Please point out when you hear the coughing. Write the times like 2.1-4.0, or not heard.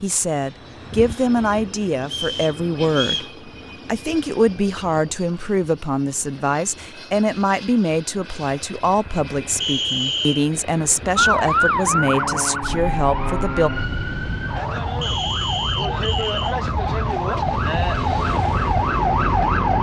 not heard.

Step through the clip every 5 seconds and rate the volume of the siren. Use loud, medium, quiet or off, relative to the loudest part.
off, off, loud, loud.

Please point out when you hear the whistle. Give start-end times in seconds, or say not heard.
2.1-3.3, 9.6-10.4, 15.0-16.6.